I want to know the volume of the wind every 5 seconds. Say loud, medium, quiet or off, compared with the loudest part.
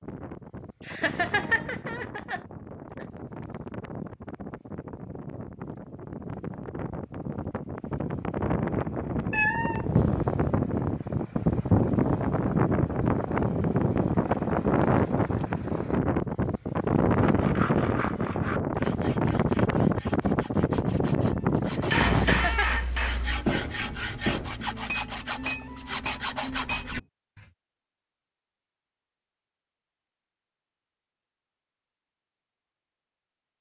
quiet, medium, loud, loud, loud, off, off.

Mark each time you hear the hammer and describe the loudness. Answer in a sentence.
The hammer can be heard from 21.8 to 27.1 s, getting quieter.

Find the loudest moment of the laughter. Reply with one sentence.
The loudest moment of the laughter is at 1 second.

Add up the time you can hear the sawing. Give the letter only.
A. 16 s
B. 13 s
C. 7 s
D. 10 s
D.